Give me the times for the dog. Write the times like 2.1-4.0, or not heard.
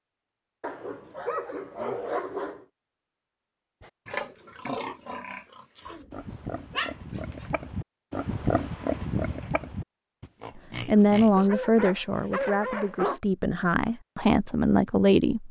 0.6-2.6, 5.8-7.5, 11.3-13.2.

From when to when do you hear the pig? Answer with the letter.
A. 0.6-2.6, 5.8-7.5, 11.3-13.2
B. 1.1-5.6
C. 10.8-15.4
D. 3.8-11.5
D.